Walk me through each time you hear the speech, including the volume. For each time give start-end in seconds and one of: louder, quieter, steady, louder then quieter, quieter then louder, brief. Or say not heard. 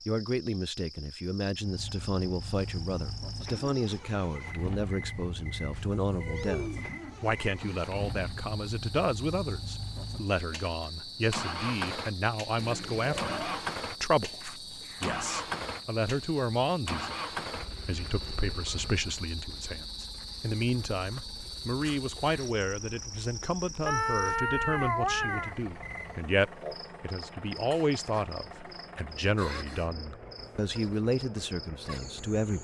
0.1-32.5 steady.